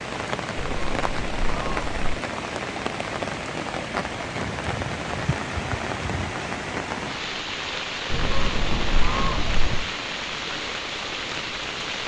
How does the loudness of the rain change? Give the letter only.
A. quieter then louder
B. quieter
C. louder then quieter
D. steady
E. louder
D.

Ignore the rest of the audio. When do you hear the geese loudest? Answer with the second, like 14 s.
9 s.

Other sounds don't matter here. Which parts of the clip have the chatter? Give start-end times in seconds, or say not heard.
not heard.